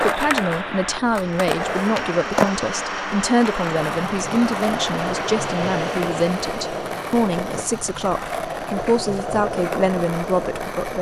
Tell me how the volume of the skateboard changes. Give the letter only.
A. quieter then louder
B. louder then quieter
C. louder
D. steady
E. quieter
D.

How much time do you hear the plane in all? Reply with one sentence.
The plane can be heard for 11 seconds in total.